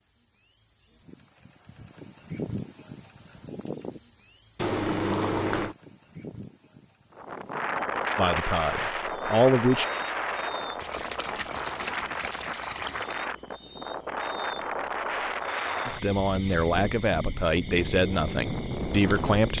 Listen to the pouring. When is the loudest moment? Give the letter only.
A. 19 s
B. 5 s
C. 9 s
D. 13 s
B.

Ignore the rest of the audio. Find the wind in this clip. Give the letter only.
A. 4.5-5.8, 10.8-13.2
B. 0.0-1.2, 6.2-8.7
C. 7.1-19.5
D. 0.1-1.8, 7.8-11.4
C.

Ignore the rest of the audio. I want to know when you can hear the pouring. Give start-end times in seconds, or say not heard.
4.5-5.8, 10.8-13.2.